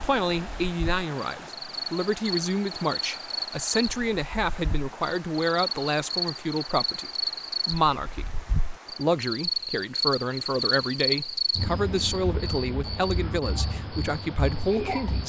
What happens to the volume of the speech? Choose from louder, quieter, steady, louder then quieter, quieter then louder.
steady.